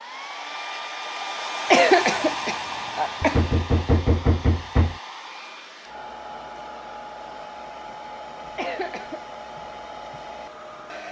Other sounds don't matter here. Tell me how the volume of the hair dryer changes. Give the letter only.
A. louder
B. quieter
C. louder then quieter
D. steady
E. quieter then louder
B.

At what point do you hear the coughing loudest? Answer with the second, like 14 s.
2 s.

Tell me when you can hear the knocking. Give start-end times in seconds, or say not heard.
3.2-5.0.